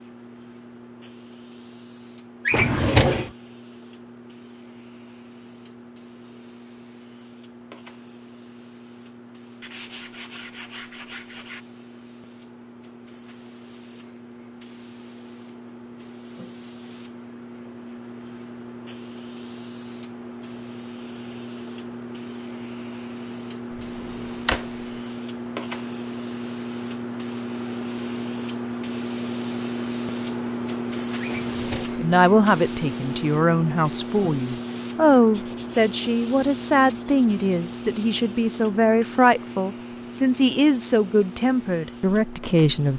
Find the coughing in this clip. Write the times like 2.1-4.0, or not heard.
not heard.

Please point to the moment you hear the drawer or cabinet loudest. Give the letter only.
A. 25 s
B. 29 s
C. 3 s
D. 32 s
C.